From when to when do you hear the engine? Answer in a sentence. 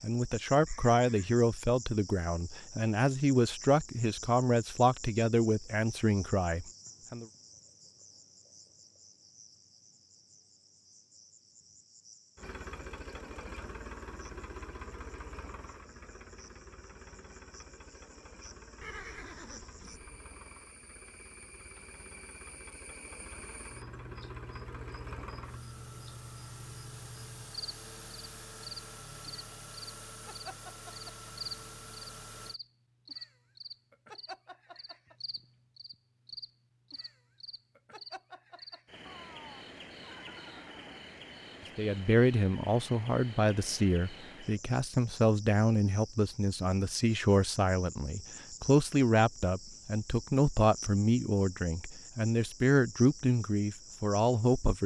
The engine can be heard from 12.3 to 32.6 s.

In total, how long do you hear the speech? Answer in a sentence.
The speech can be heard for 20 seconds in total.